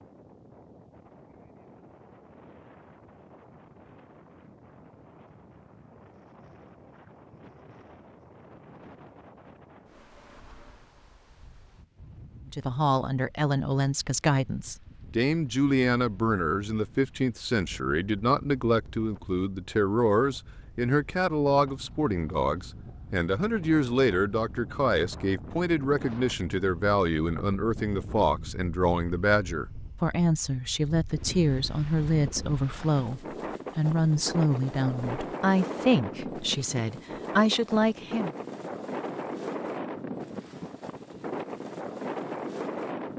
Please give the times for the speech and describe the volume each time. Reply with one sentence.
You can hear the speech from 12.4 to 38.4 s, at a steady volume.